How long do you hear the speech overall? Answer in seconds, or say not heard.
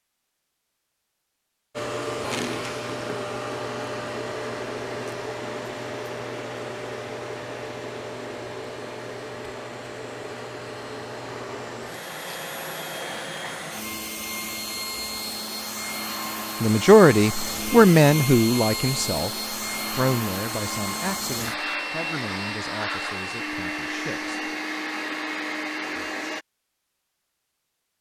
8 s.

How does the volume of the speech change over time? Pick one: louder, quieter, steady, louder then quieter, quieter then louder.
quieter.